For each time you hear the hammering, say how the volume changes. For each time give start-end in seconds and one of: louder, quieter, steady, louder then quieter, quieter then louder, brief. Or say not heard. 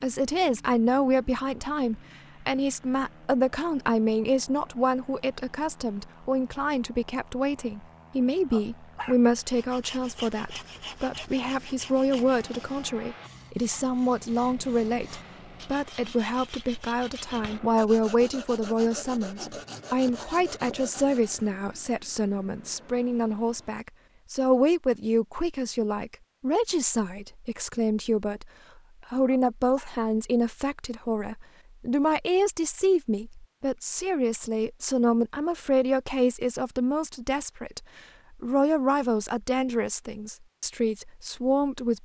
not heard.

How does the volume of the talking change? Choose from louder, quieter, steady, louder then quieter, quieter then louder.
steady.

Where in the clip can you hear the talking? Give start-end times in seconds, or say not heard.
0.0-42.0.